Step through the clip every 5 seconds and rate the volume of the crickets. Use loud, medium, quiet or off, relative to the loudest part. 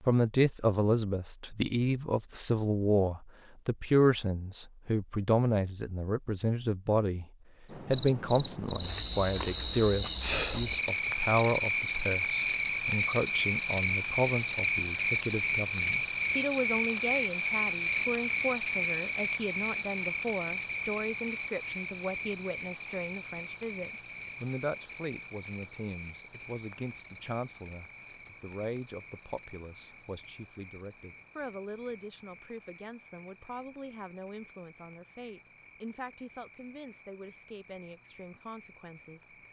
off, loud, loud, loud, medium, quiet, quiet, quiet.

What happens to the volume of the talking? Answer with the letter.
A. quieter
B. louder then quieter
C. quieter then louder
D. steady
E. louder
A.